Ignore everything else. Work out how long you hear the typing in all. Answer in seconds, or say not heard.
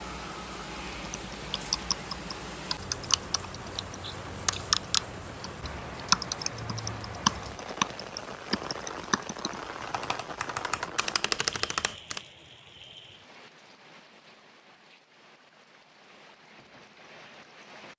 11 s.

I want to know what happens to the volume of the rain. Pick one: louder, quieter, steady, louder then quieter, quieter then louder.
quieter.